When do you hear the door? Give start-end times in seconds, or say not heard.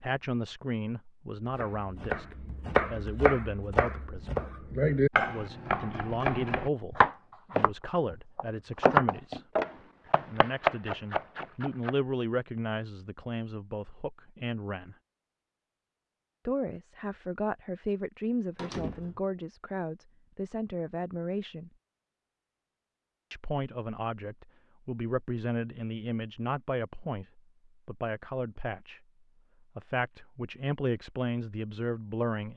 18.6-19.2.